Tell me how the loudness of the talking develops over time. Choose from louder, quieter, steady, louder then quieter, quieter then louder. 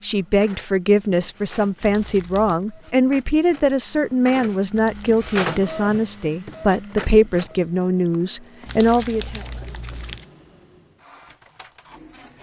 steady.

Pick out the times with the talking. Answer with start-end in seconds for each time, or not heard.
0.0-9.4.